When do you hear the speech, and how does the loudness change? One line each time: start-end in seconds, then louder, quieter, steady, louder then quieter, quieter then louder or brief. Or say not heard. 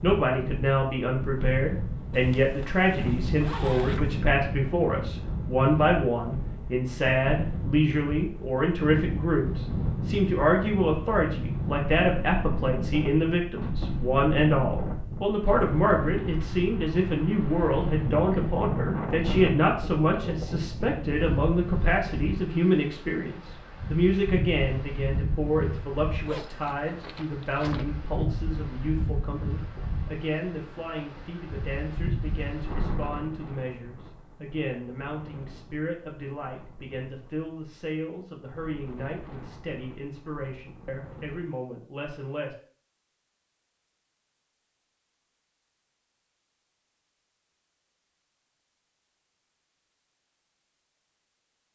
0.0-42.5 quieter.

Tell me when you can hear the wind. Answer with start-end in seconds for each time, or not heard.
0.0-41.5.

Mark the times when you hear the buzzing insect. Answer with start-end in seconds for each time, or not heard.
not heard.